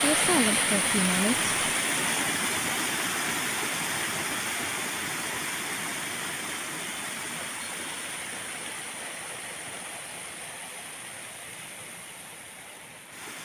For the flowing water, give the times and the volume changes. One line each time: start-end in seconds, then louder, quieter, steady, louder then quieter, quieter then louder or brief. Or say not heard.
0.0-13.4 quieter.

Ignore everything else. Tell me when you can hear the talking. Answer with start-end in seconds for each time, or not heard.
0.0-1.4.